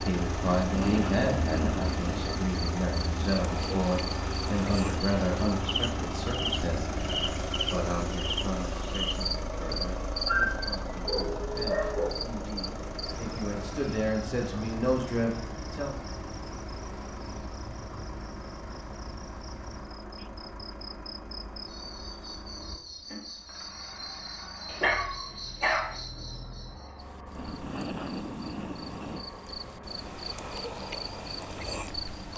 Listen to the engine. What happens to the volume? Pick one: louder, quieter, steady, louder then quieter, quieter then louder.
quieter.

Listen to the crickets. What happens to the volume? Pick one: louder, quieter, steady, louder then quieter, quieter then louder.
quieter then louder.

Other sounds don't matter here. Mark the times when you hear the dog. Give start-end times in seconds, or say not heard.
10.2-12.1, 24.6-25.9.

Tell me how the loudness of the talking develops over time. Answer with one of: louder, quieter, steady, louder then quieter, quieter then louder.
quieter then louder.